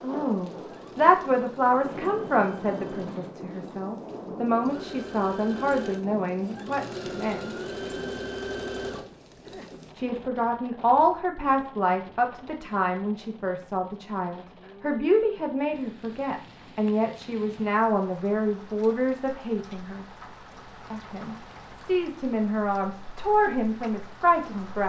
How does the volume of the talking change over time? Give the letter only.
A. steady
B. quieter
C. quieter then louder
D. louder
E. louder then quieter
A.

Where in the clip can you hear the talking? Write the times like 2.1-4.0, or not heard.
0.0-7.6, 9.9-20.1, 20.9-24.8.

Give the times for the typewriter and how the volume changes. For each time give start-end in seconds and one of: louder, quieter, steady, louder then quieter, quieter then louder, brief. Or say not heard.
not heard.